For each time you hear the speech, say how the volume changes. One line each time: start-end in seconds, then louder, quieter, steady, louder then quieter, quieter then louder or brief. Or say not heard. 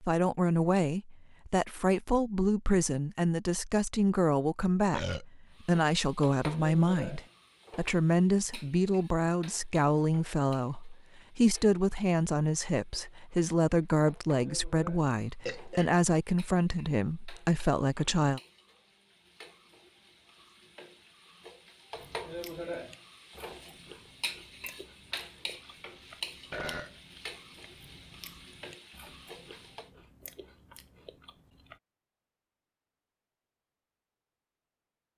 0.0-18.4 steady.